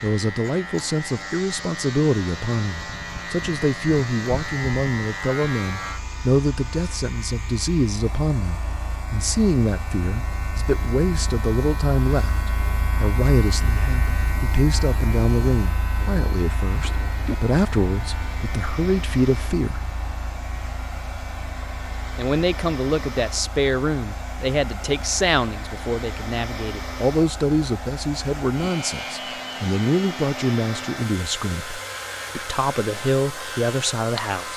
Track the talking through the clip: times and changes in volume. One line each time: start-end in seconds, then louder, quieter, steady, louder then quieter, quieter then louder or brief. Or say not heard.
0.0-19.9 steady
22.1-34.5 steady.